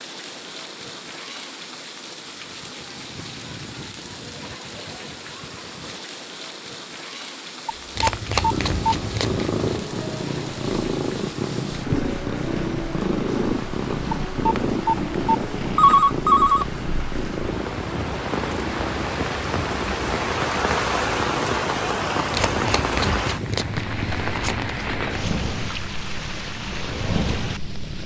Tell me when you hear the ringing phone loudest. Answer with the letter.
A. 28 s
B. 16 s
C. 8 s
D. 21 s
B.